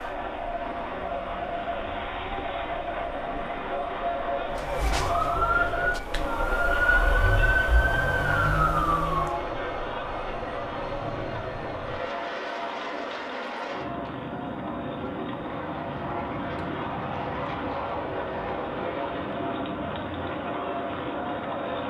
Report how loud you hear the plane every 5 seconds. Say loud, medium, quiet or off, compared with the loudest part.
quiet, medium, loud, loud, loud.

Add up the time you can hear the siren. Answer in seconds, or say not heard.
5 s.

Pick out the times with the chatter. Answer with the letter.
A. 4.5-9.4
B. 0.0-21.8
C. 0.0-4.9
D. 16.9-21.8
B.